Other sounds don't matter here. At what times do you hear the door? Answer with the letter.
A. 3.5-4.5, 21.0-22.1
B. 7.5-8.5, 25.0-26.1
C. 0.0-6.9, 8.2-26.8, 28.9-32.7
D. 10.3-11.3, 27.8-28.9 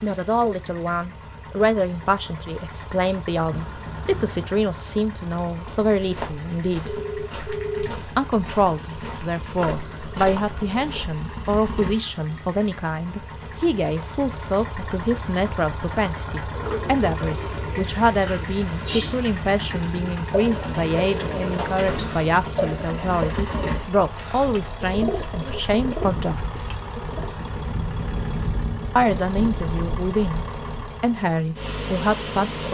A.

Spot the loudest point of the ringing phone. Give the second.
8 s.